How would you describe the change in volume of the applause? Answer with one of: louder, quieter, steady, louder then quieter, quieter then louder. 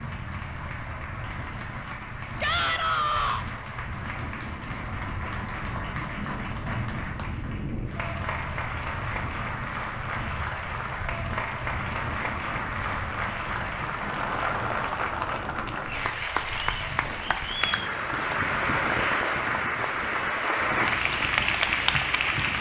louder.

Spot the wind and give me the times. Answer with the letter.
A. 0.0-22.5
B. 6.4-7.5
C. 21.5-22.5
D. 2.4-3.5
A.